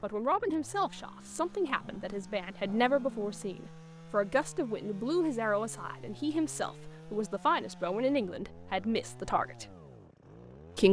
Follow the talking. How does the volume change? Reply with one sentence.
The volume of the talking stays about the same.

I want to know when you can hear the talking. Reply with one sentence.
You can hear the talking from 0.0 to 9.7 s.